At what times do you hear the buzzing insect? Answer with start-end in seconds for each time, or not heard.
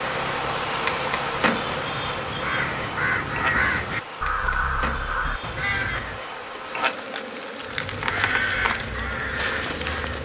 0.0-10.1.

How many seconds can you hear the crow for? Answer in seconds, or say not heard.
9 s.